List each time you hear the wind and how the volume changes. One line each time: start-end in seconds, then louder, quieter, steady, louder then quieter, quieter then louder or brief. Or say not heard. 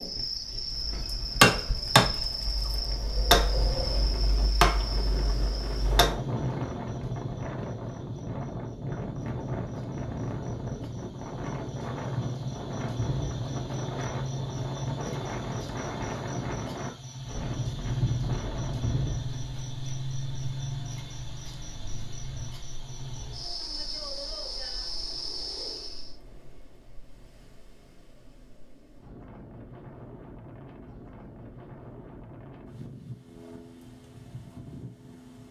0.0-35.4 quieter then louder.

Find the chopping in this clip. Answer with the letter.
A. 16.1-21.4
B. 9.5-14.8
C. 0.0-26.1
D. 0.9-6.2
D.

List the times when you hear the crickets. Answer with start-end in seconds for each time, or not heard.
0.0-26.1.